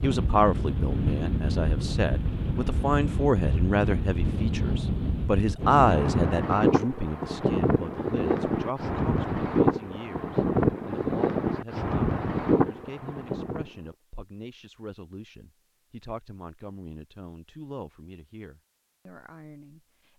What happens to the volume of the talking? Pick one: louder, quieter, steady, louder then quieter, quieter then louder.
quieter.